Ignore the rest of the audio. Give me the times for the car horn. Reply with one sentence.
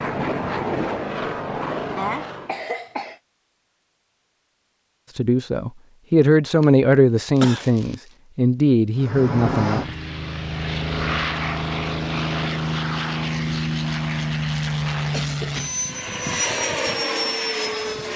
You can't hear the car horn here.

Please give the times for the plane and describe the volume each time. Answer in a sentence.
You can hear the plane briefly from 0.0 to 2.6 s; and from 8.9 to 18.1 s, at a steady volume.